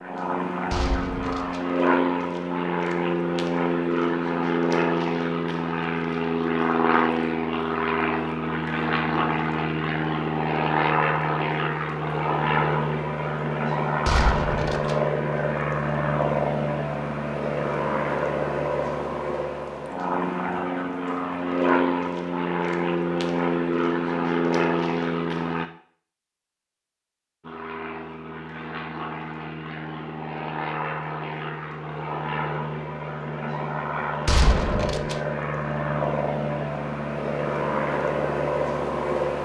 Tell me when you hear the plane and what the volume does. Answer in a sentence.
You can hear the plane from 0.0 to 25.6 s, at a steady volume; and from 27.4 to 39.4 s, getting louder.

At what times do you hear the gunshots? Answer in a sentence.
The gunshots can be heard from 0.7 to 1.6 s, from 14.1 to 14.9 s and from 34.2 to 35.1 s.